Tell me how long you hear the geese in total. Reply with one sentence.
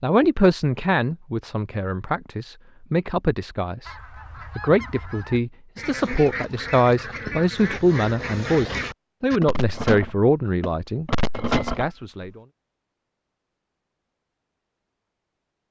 The geese can be heard for 8 seconds in total.